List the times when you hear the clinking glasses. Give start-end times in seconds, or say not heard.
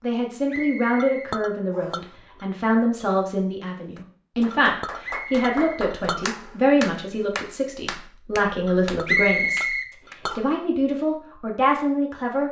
1.0-2.5, 4.5-6.3, 8.7-10.4.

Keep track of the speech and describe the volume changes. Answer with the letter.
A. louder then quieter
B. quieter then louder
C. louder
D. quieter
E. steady
E.